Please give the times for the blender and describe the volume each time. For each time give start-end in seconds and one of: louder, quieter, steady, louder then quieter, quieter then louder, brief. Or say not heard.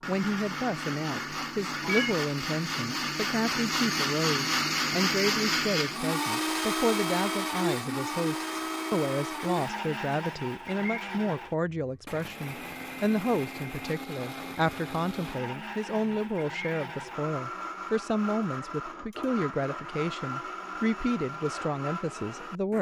0.0-22.7 quieter.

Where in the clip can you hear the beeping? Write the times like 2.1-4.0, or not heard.
1.8-2.2.